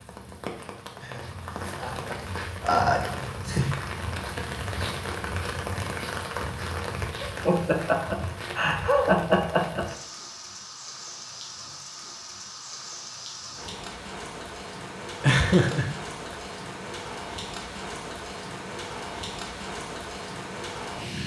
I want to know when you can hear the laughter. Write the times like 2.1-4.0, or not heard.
1.0-3.8, 7.2-9.8, 15.2-16.4.